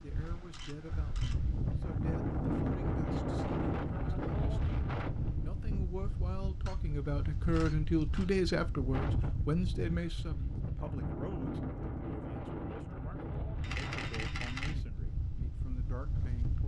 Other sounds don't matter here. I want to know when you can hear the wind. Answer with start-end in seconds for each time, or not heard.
0.0-16.6.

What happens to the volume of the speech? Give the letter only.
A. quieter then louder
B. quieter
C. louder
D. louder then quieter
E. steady
D.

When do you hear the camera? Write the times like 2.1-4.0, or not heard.
0.5-1.4, 6.7-8.3, 13.6-14.8.